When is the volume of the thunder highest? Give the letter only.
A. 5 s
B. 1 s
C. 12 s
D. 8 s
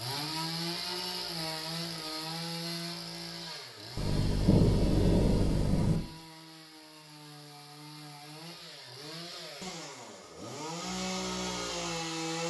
A.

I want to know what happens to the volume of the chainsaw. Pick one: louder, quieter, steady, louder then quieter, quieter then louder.
quieter then louder.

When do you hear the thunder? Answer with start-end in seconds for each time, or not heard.
4.0-6.0.